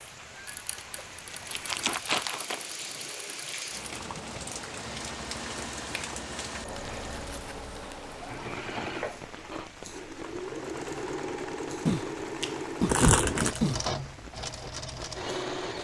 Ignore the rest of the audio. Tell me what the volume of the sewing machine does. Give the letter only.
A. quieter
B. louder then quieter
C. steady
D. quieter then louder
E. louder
E.